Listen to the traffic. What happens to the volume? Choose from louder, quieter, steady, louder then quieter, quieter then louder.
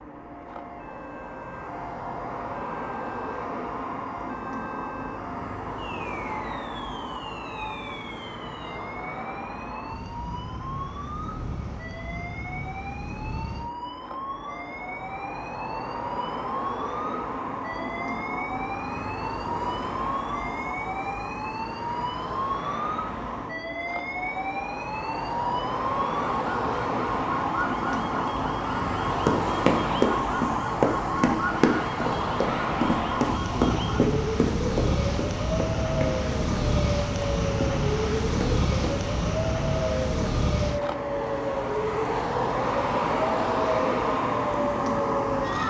louder.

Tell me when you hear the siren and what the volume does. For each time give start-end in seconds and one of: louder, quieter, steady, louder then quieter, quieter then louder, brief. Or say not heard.
0.2-45.6 louder.